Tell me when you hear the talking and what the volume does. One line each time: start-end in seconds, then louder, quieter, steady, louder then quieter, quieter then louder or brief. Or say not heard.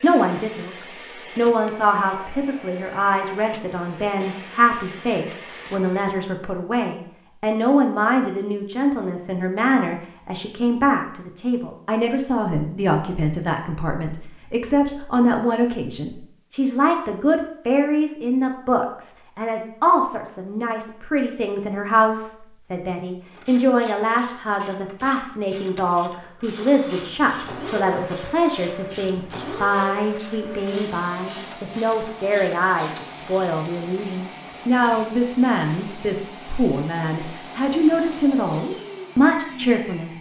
0.0-40.1 steady.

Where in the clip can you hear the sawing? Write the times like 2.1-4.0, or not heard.
not heard.